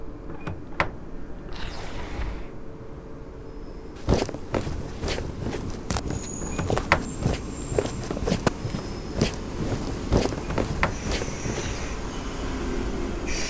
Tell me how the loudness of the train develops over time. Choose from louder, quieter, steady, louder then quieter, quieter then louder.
louder.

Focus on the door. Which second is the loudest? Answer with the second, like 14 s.
7 s.